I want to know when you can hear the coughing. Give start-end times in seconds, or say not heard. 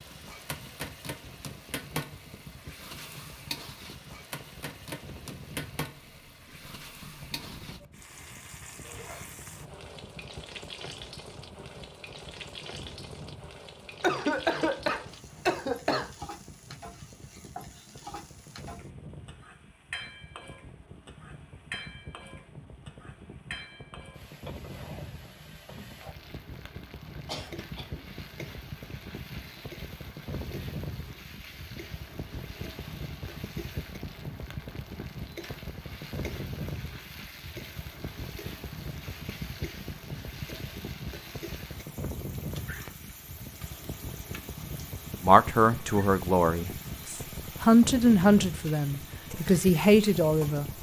14.0-16.1, 27.2-28.0.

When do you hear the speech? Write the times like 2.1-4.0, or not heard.
45.2-50.7.